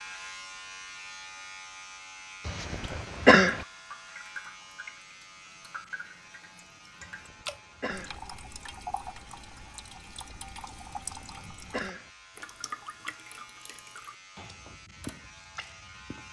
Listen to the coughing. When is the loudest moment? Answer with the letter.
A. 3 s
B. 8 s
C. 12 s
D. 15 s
A.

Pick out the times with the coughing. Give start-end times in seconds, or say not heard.
2.5-3.6, 7.0-8.2, 10.9-12.1.